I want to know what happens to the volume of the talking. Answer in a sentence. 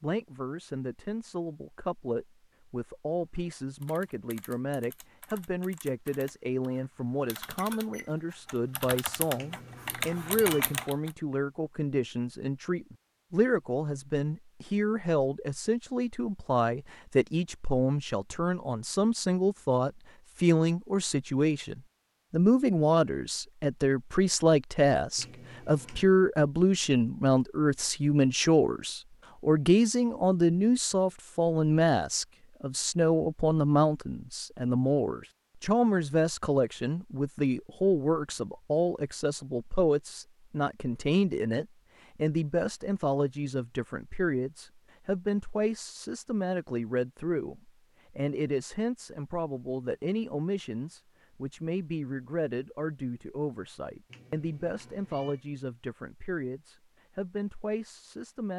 The loudness of the talking goes up, then down.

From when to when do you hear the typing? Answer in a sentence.
You can hear the typing from 3.5 to 11.2 s.